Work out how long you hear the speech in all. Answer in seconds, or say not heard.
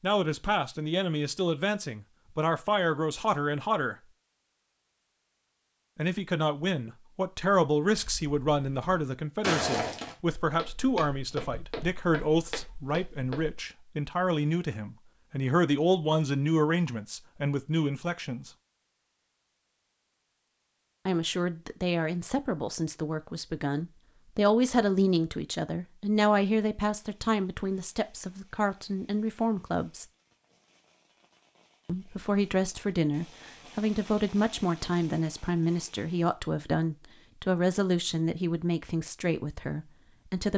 34 s.